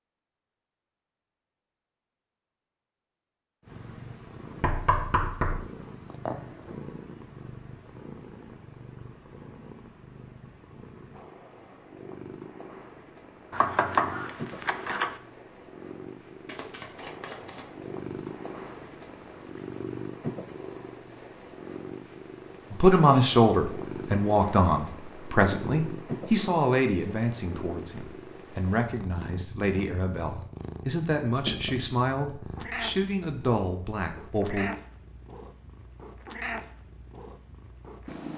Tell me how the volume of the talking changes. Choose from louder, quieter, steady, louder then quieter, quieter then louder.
quieter.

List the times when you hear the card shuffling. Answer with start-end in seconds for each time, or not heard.
16.4-17.6.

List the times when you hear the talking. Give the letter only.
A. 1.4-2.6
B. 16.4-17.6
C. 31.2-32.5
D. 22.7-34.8
D.